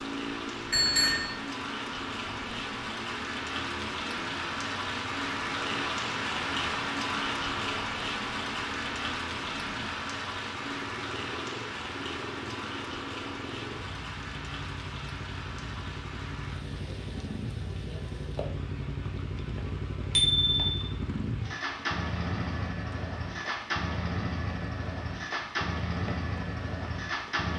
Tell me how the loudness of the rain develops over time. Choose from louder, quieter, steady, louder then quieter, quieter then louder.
quieter.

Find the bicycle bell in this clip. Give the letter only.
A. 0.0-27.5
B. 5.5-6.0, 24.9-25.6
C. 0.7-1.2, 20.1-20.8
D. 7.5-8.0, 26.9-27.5
C.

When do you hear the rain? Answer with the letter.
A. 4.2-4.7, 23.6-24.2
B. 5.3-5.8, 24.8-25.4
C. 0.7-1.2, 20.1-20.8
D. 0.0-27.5
D.